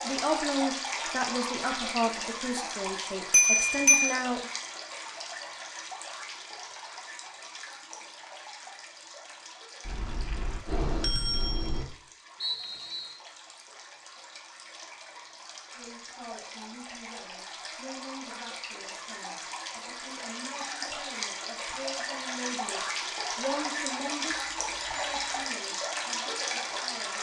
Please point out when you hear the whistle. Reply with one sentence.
You can hear the whistle from 12.4 to 13.2 s.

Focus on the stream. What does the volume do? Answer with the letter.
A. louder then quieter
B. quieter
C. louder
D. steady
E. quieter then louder
E.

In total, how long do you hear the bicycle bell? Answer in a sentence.
The bicycle bell can be heard for 4 seconds in total.